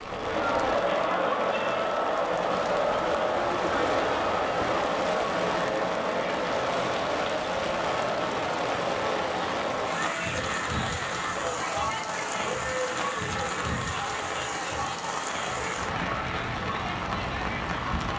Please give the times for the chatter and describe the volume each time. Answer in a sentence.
The chatter can be heard from 0.0 to 18.1 s, getting quieter.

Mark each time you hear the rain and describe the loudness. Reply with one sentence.
You can hear the rain from 0.0 to 18.1 s, at a steady volume.